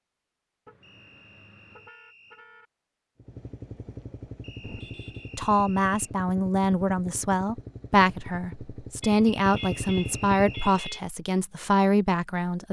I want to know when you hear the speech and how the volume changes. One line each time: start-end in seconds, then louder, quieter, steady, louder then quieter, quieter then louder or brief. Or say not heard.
5.3-12.6 steady.